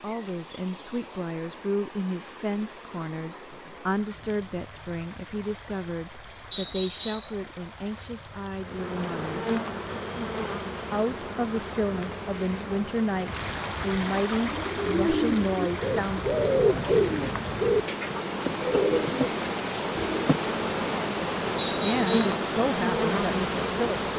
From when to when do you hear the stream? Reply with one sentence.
The stream can be heard from 0.0 to 24.1 s.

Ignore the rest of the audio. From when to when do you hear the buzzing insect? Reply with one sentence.
The buzzing insect can be heard from 8.6 to 24.1 s.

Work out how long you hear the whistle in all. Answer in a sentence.
You can hear the whistle for 2 seconds altogether.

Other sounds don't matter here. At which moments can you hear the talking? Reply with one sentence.
You can hear the talking from 0.0 to 9.4 s, from 10.9 to 16.2 s and from 21.8 to 24.1 s.